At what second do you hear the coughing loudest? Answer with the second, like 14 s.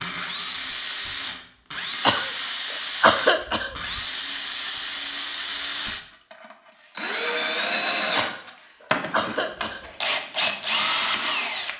3 s.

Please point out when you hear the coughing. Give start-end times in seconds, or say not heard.
2.0-4.0, 8.2-9.8.